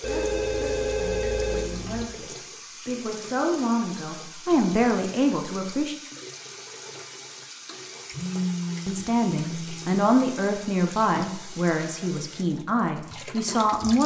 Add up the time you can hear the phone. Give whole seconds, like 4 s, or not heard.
4 s.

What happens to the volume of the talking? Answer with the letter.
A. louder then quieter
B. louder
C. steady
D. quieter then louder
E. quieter
B.